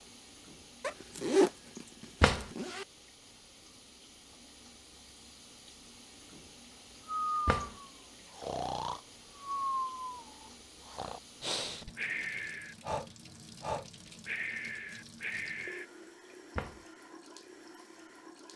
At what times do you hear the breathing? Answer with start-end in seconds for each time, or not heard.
7.0-15.8.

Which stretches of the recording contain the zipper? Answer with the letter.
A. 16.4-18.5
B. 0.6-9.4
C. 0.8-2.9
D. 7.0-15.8
C.